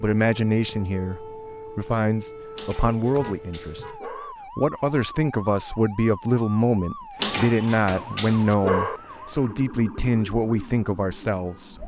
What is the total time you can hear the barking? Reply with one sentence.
The barking can be heard for 4 seconds in total.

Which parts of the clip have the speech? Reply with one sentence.
The speech can be heard from 0.0 to 11.8 s.